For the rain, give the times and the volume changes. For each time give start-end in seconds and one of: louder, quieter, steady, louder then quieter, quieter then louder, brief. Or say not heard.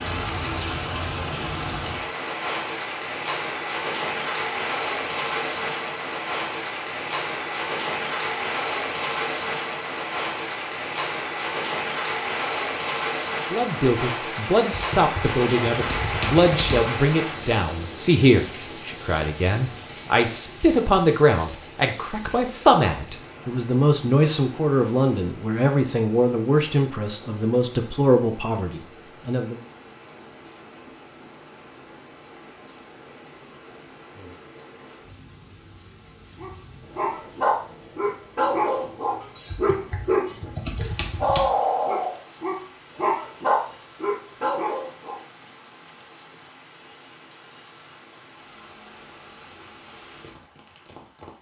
0.0-51.3 quieter.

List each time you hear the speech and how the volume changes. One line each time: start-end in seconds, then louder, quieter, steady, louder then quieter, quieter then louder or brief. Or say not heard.
13.5-29.6 steady.